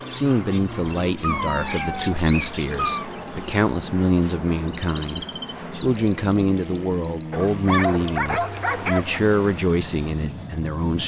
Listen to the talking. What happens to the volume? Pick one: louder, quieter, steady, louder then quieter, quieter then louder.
steady.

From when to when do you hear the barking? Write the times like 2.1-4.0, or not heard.
0.9-3.1, 7.3-9.2.